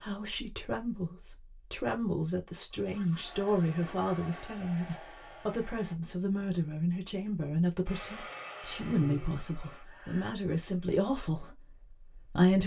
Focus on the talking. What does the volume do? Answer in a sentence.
The volume of the talking stays about the same.